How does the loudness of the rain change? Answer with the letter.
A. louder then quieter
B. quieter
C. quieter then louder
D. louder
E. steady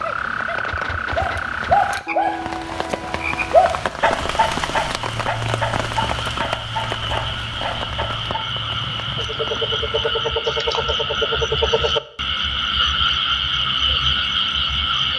A.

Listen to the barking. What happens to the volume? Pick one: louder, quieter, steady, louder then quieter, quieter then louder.
quieter.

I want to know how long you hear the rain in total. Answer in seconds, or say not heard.
10 s.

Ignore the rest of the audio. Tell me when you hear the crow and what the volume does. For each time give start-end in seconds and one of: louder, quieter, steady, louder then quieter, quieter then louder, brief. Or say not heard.
not heard.